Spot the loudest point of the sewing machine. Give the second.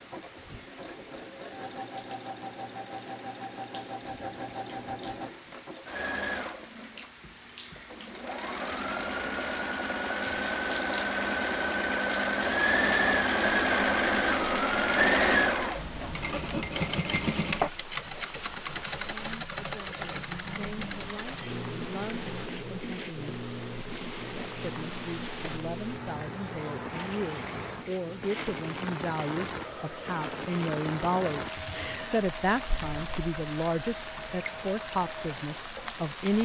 15 s.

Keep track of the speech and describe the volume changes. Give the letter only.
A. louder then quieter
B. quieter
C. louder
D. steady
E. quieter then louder
C.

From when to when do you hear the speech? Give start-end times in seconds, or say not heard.
18.9-23.6, 24.6-36.3.